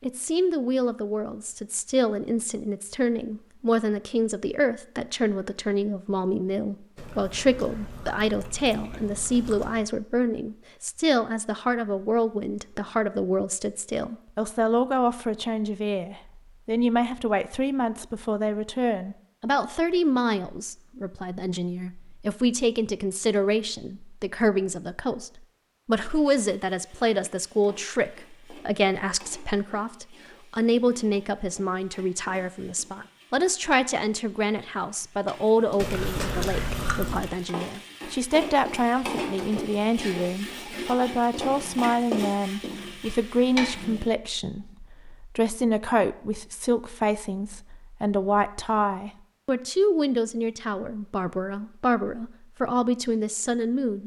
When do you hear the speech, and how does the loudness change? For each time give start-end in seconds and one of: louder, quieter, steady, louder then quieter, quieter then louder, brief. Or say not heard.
0.0-54.0 steady.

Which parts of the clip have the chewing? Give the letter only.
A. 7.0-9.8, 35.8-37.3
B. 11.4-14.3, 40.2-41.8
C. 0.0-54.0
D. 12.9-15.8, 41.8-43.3
A.